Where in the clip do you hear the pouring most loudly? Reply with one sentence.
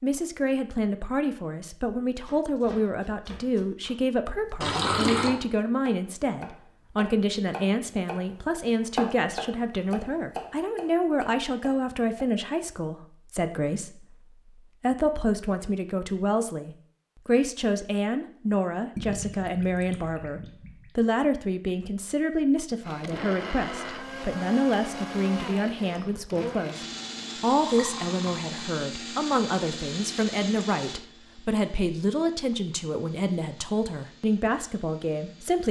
The volume of the pouring peaks at 5 seconds.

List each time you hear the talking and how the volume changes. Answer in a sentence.
You can hear the talking from 0.0 to 35.6 s, at a steady volume.